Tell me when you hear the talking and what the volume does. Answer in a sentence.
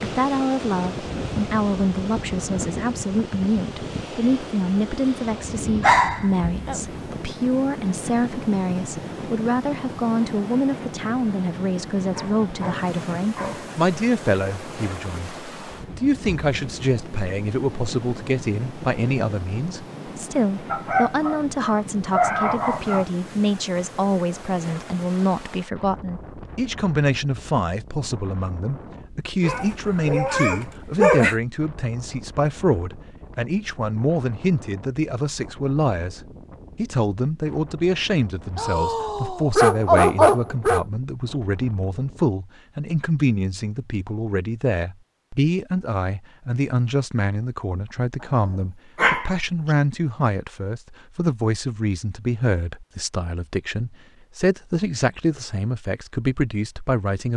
The talking can be heard from 0.0 to 57.3 s, at a steady volume.